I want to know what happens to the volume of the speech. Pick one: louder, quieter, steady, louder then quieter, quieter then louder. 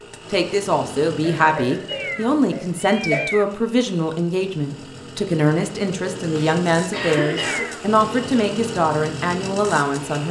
steady.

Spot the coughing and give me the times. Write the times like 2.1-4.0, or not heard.
1.2-3.2, 6.2-7.7.